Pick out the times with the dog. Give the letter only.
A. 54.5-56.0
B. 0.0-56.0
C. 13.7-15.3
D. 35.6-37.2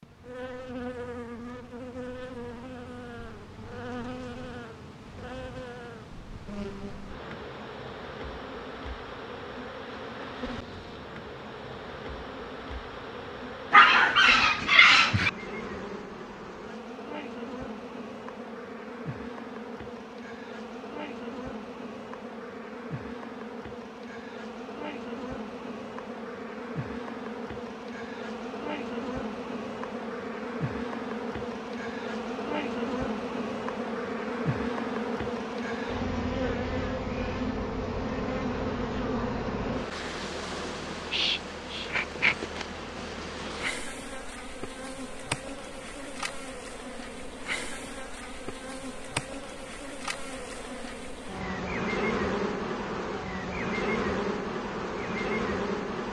C.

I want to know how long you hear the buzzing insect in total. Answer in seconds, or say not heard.
56 s.